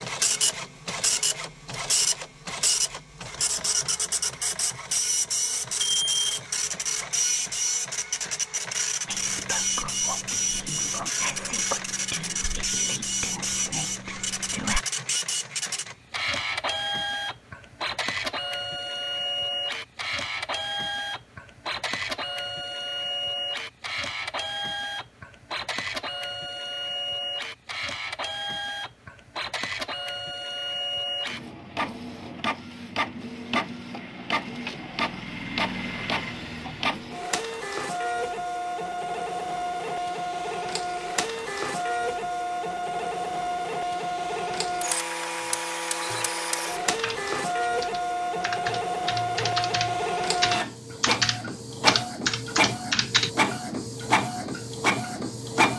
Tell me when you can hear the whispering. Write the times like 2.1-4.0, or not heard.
9.1-14.8.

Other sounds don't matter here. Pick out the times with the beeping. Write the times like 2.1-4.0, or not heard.
5.8-6.4.